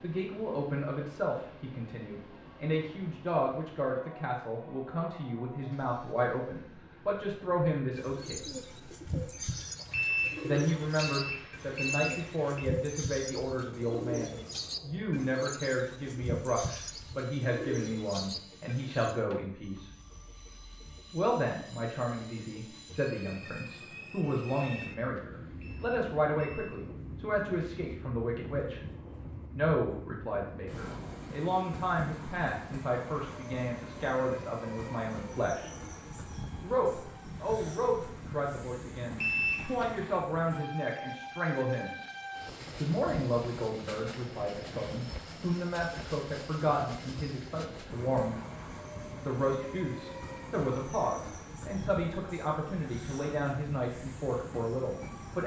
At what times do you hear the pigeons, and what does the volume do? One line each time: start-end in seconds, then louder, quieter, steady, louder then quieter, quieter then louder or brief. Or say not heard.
8.0-19.1 steady.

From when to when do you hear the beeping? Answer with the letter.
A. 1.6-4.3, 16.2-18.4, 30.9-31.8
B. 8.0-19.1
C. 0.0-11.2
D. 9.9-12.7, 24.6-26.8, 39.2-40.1
D.